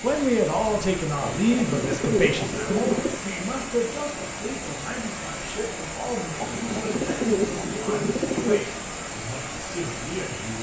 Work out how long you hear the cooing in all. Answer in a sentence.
You can hear the cooing for 4 seconds altogether.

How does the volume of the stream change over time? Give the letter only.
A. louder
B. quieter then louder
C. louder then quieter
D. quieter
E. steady
E.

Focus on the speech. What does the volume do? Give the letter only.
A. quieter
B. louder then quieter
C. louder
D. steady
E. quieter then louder
A.